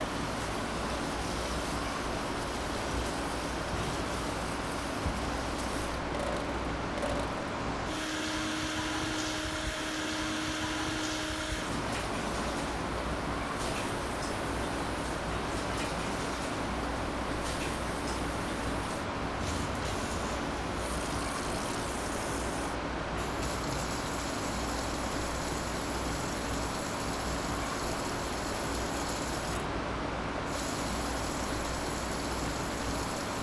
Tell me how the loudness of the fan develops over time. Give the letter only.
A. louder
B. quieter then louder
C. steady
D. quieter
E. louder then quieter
C.